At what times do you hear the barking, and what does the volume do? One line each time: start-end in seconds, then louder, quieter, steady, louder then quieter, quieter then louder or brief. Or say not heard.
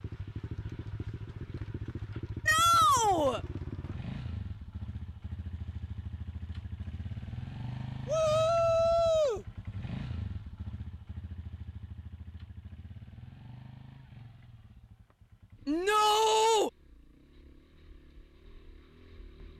not heard.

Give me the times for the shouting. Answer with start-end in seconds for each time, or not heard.
2.5-3.4, 8.1-9.4, 15.7-16.7.